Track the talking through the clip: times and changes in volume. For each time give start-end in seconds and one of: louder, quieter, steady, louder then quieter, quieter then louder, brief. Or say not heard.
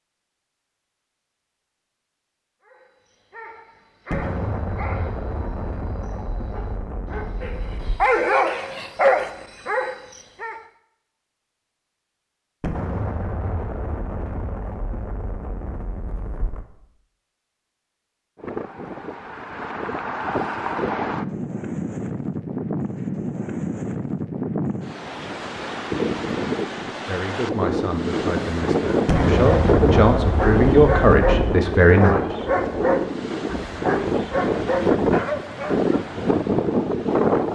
27.1-32.2 louder.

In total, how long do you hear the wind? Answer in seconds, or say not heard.
19 s.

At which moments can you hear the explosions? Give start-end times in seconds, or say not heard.
4.1-8.1, 12.6-16.6, 29.1-31.6.